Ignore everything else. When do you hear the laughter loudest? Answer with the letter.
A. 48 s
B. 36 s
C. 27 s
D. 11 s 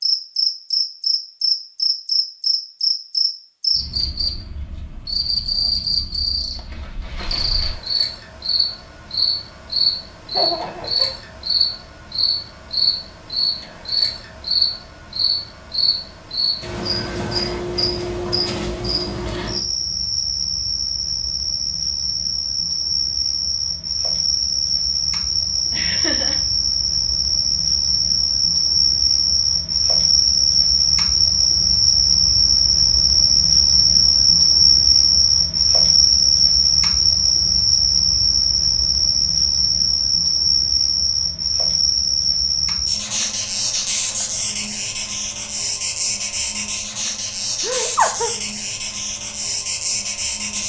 A.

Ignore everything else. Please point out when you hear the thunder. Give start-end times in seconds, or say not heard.
not heard.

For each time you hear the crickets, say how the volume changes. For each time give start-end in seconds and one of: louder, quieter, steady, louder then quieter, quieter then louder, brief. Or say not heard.
0.0-50.6 louder then quieter.